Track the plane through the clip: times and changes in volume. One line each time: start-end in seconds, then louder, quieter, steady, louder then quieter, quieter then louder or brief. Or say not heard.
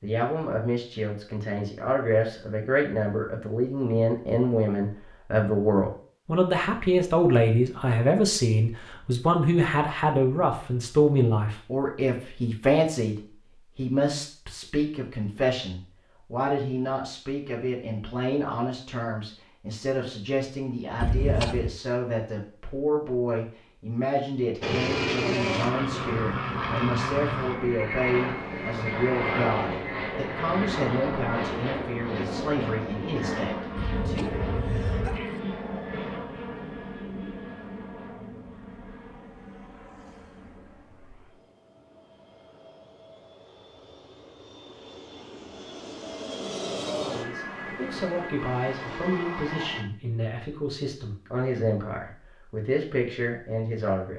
24.6-49.9 quieter then louder.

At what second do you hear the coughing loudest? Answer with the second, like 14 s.
21 s.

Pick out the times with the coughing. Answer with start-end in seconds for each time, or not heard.
21.0-21.8, 33.8-35.4.